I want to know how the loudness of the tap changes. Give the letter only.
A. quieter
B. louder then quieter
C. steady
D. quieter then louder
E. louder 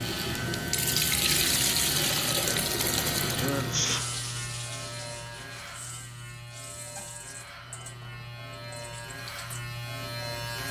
A.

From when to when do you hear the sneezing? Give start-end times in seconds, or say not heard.
3.4-4.0.